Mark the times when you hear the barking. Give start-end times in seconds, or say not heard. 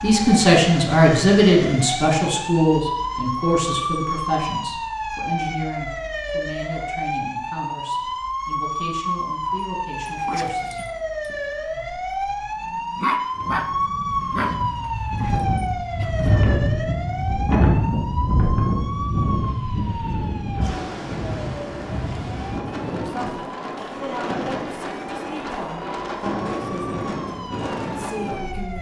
9.5-16.3.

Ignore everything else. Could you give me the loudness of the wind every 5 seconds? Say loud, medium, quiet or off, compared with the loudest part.
off, off, quiet, loud, medium, medium.